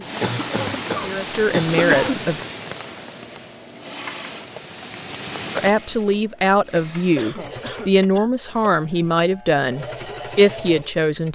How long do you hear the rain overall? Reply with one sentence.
The rain can be heard for 6 seconds in total.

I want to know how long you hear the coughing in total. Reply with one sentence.
The coughing can be heard for 3 seconds in total.